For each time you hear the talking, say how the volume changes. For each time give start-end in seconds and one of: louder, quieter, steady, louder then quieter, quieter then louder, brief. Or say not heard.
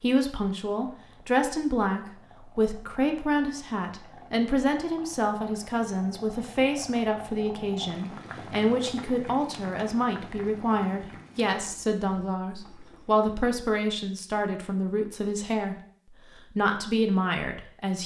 0.0-15.8 steady
16.5-18.0 brief.